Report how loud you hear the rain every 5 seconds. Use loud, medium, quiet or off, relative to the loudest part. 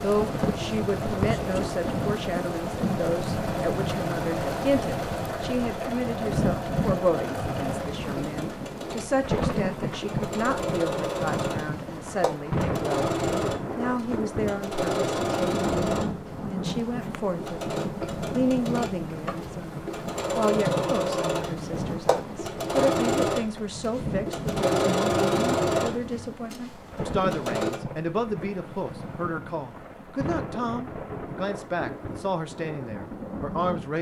loud, loud, loud, loud, loud, medium, medium.